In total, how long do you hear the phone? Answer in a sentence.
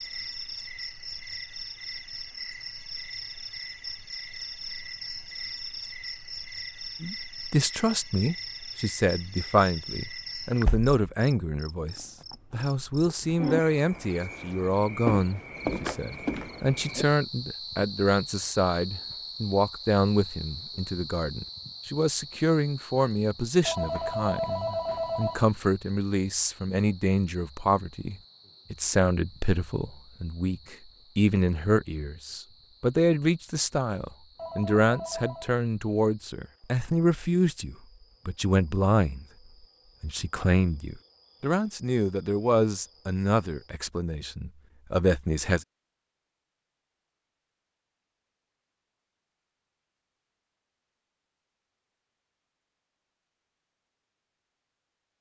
The phone can be heard for 3 seconds in total.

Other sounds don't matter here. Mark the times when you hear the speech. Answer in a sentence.
You can hear the speech from 7.0 to 39.2 s and from 40.0 to 45.6 s.